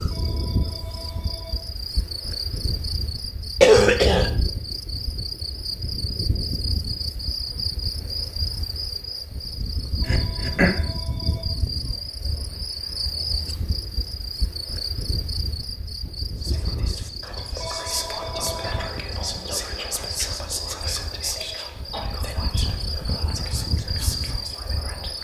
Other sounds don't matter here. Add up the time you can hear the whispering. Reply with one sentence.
The whispering can be heard for 9 seconds in total.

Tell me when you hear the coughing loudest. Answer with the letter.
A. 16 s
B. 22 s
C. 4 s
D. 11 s
C.